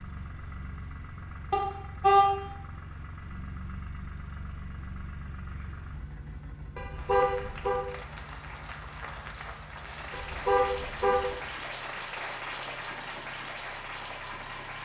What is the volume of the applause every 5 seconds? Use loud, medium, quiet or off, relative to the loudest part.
off, medium, loud.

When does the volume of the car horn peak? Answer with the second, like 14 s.
2 s.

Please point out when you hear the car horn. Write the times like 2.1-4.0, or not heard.
1.5-2.2, 6.8-7.8, 10.1-11.2.